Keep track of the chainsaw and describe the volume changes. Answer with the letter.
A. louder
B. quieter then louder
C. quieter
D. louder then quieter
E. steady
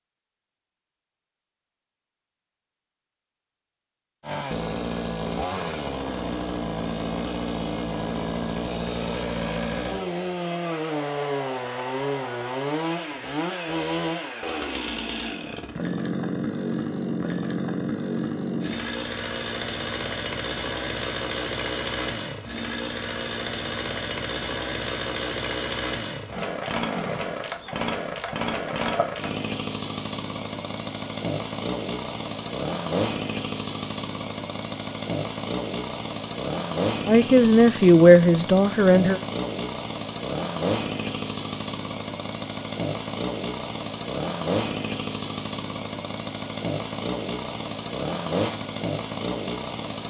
E.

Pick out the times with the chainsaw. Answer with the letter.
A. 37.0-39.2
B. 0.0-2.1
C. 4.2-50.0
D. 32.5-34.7
C.